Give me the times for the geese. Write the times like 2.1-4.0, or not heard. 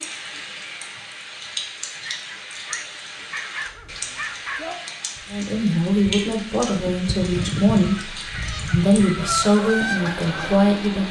3.5-10.7.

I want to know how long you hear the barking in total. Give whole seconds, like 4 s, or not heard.
3 s.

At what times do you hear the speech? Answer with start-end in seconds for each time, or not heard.
5.3-11.0.